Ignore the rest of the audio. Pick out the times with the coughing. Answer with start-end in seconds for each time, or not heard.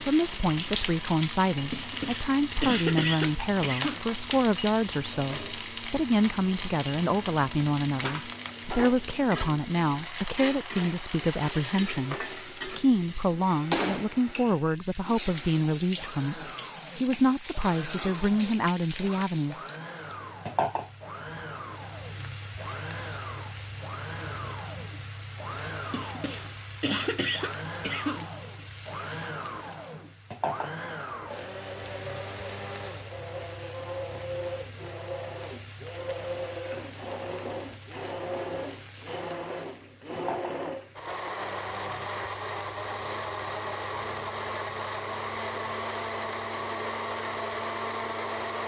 1.7-4.0, 25.9-28.4.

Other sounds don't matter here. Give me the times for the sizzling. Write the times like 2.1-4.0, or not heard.
0.0-48.6.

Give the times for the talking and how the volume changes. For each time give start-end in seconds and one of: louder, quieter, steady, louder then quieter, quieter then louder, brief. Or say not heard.
0.0-19.6 steady.